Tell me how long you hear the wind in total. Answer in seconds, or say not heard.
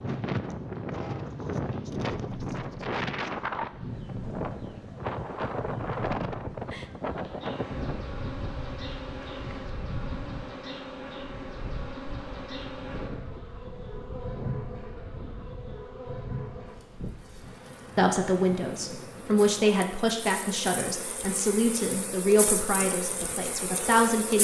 20 s.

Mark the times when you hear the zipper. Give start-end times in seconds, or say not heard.
not heard.